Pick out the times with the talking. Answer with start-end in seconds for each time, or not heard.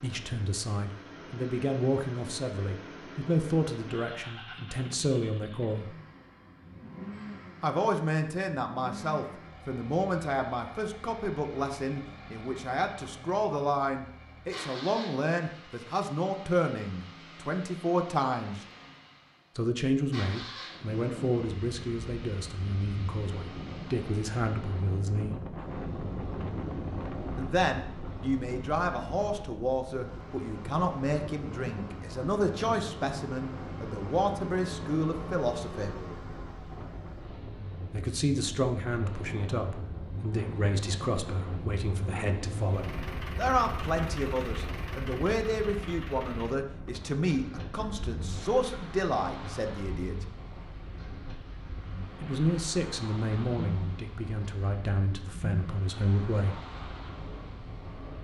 0.0-6.0, 7.6-18.6, 19.6-25.4, 27.4-35.9, 37.9-50.2, 52.2-56.6.